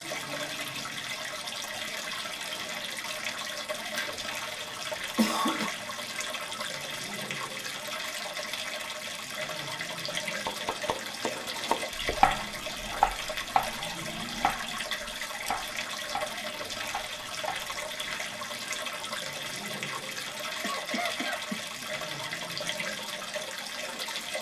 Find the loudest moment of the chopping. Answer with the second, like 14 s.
12 s.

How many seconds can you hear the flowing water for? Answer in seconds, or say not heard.
24 s.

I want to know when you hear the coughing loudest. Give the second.
5 s.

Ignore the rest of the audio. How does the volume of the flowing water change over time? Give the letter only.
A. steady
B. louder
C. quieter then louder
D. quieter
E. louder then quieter
A.